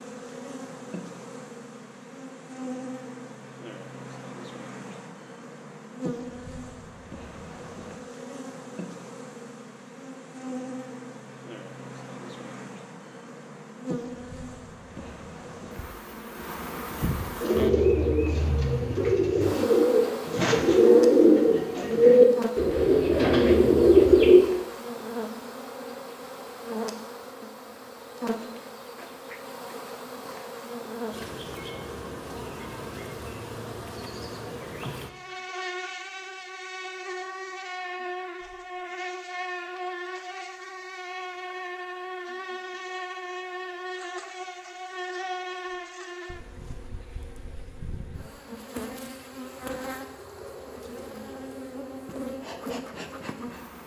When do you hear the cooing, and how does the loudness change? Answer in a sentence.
The cooing can be heard from 17.4 to 24.4 s, getting louder.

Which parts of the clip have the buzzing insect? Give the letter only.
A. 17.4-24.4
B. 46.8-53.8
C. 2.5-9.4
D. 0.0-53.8
D.